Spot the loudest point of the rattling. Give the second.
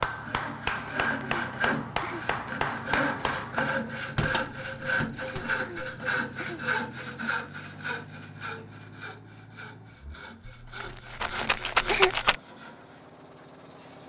12 s.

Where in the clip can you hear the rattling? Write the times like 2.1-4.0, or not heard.
10.4-12.3.